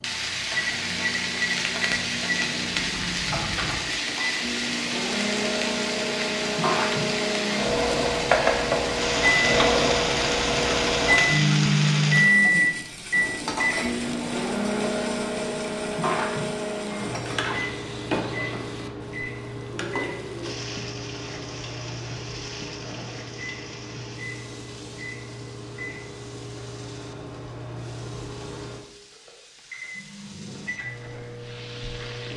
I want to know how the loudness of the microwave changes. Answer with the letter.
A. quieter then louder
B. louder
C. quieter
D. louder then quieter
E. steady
D.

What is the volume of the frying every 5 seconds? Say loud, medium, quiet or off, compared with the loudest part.
loud, loud, loud, medium, quiet, quiet, quiet.